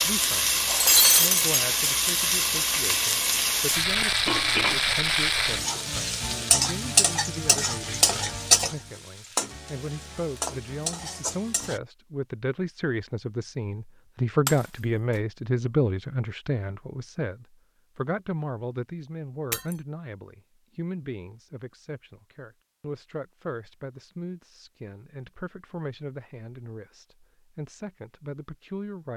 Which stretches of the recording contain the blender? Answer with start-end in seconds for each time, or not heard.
not heard.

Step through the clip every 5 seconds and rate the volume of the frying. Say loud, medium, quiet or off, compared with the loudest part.
loud, loud, medium, off, off, off.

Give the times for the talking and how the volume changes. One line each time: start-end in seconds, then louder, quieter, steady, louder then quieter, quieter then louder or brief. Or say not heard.
0.0-0.5 brief
1.1-29.1 louder then quieter.